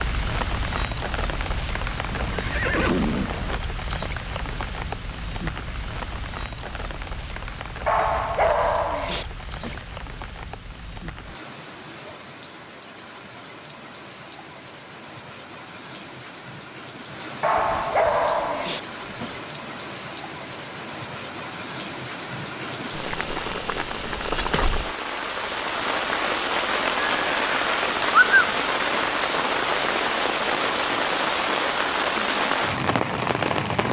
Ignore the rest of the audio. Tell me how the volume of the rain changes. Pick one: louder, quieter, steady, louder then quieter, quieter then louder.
quieter then louder.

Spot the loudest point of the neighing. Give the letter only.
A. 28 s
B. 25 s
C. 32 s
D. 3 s
A.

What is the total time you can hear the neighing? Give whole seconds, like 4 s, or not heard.
3 s.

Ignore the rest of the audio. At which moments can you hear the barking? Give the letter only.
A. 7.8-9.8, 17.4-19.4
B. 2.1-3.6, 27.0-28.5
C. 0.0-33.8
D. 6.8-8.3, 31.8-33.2
A.